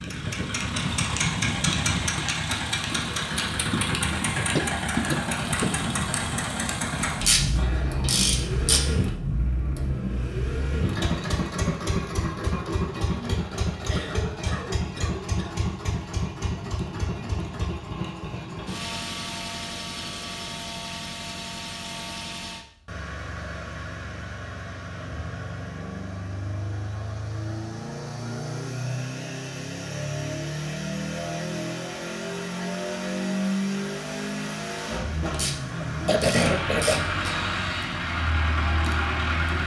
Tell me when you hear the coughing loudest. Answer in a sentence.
The loudest moment of the coughing is at 36 seconds.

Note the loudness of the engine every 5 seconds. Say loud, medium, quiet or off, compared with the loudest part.
loud, loud, loud, medium, medium, medium, loud, loud.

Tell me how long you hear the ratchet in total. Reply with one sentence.
The ratchet can be heard for 4 seconds in total.